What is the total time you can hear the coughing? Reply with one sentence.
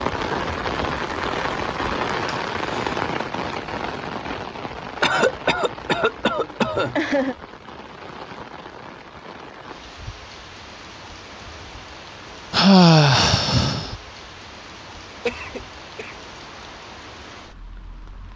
You can hear the coughing for 3 seconds altogether.